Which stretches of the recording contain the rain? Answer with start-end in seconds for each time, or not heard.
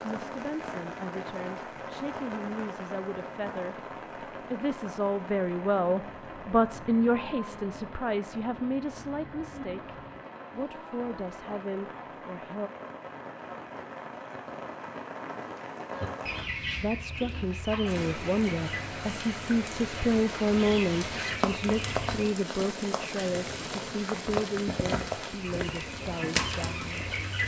0.0-27.4.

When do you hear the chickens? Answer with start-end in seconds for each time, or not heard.
15.8-22.4, 25.2-27.4.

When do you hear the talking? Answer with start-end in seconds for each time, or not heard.
0.0-12.7, 16.8-27.1.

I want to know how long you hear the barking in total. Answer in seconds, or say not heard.
not heard.